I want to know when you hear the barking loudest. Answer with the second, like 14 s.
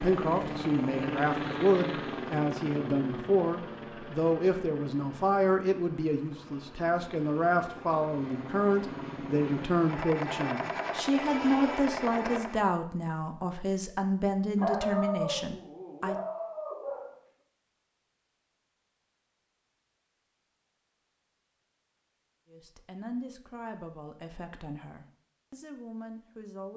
15 s.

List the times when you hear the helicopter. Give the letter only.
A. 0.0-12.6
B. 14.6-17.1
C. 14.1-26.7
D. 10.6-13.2
A.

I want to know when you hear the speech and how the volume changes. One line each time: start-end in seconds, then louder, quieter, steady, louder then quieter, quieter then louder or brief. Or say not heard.
0.0-16.1 steady
22.5-26.7 quieter then louder.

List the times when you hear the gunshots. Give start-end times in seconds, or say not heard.
not heard.